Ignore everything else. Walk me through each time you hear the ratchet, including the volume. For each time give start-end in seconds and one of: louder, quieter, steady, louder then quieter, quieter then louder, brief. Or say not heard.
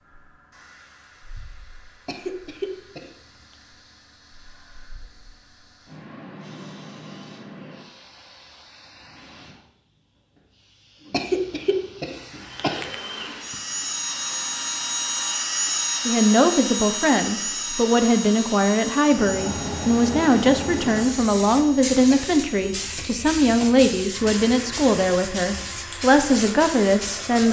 not heard.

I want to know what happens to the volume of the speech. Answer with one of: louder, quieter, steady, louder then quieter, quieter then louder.
steady.